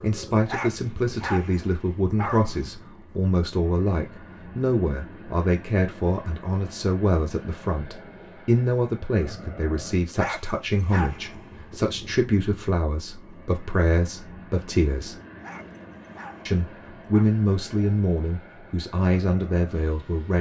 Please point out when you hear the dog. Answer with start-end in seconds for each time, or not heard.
0.5-2.6, 10.2-11.7, 15.4-17.2.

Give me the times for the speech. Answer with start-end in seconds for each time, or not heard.
0.0-15.2, 16.4-20.3.